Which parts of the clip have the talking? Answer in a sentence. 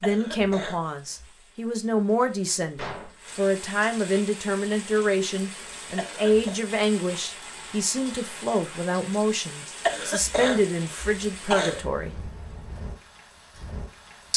You can hear the talking from 0.0 to 12.2 s.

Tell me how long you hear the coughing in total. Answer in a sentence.
You can hear the coughing for 4 seconds altogether.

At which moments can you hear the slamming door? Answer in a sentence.
You can hear the slamming door from 2.8 to 3.3 s.